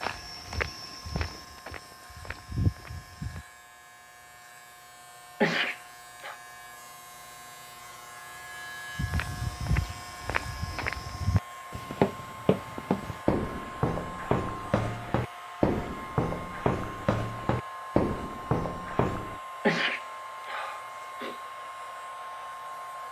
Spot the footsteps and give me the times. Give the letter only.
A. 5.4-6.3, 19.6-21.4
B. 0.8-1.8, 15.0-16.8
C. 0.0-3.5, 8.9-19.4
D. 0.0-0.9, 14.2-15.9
C.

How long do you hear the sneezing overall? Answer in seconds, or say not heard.
3 s.